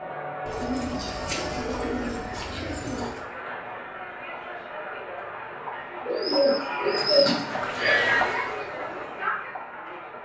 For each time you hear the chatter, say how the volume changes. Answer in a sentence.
You can hear the chatter from 0.0 to 10.2 s, getting louder.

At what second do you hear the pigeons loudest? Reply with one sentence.
The volume of the pigeons peaks at 7 seconds.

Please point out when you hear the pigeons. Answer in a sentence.
You can hear the pigeons from 0.5 to 3.2 s and from 6.0 to 7.9 s.